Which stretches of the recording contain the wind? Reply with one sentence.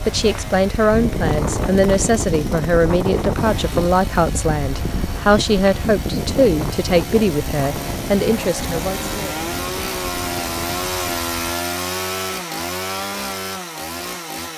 The wind can be heard from 0.0 to 11.6 s.